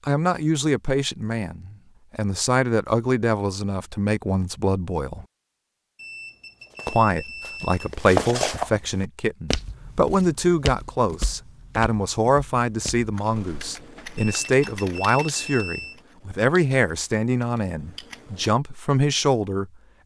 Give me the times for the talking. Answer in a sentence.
The talking can be heard from 0.1 to 5.2 s and from 6.8 to 19.7 s.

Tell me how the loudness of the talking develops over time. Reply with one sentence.
The volume of the talking stays about the same.